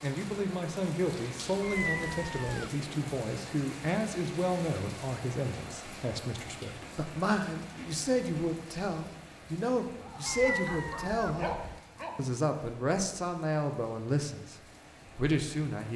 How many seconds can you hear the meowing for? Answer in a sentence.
You can hear the meowing for 3 seconds altogether.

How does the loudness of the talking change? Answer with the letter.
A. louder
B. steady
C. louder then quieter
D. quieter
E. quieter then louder
B.